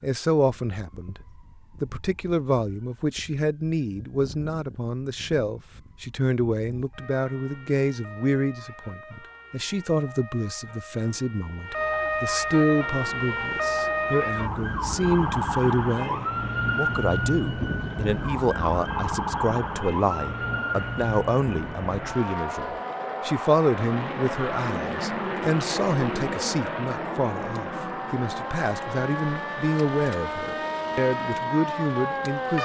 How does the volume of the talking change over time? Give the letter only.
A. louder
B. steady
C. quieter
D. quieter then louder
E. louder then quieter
B.